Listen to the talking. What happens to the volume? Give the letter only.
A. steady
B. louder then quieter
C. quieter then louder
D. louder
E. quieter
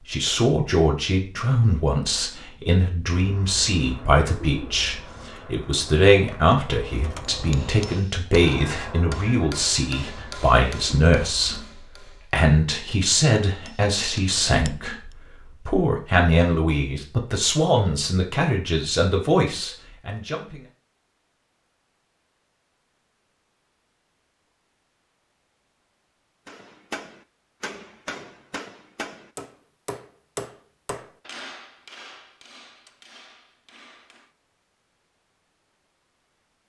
A.